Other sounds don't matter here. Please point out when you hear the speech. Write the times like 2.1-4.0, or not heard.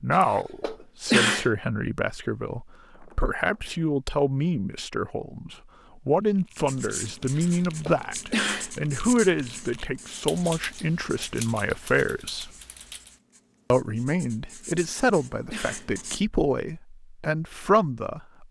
0.0-12.5, 13.7-18.4.